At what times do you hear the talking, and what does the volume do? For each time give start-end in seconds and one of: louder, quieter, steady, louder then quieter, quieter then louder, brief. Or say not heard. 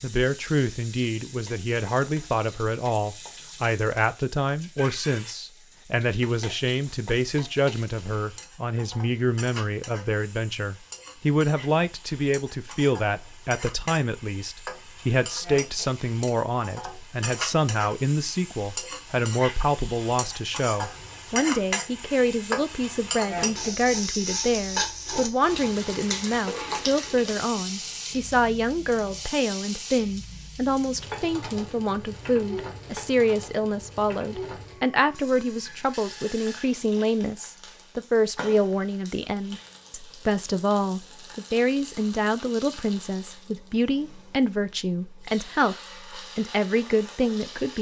0.0-47.7 steady.